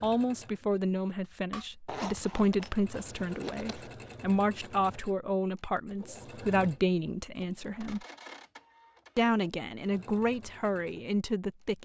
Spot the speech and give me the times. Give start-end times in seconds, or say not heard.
0.0-8.1, 9.2-11.7.